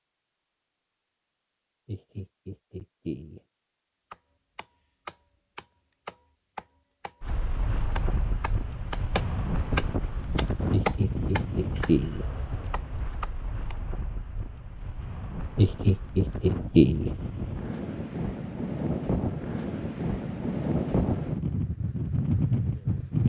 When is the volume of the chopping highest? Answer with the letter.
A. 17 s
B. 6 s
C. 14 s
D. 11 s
D.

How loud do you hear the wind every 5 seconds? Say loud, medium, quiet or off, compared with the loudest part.
off, medium, medium, medium, loud.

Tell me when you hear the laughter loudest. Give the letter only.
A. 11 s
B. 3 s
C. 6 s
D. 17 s
D.